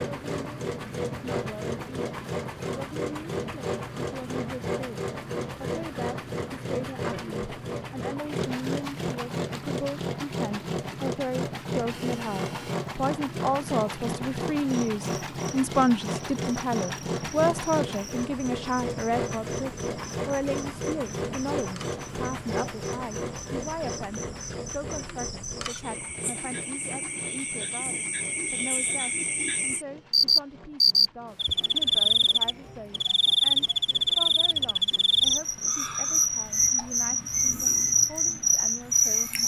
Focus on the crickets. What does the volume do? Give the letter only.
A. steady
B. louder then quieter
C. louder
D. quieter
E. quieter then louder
C.